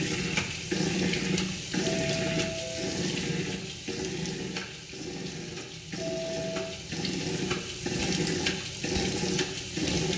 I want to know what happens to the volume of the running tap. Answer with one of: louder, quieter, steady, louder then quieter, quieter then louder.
quieter then louder.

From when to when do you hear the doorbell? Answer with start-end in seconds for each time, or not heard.
1.8-3.0, 6.0-6.8.